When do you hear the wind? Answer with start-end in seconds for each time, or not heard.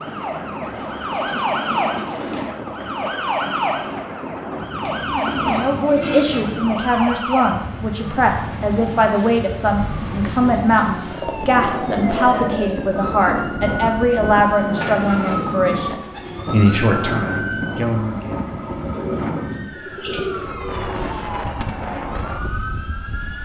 0.0-23.4.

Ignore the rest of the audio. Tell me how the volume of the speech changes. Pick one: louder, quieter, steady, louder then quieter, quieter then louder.
steady.